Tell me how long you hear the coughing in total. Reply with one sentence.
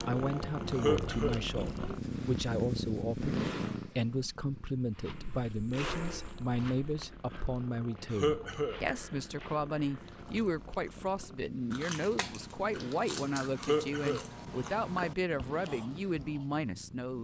You can hear the coughing for 2 seconds altogether.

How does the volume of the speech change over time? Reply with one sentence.
The volume of the speech stays about the same.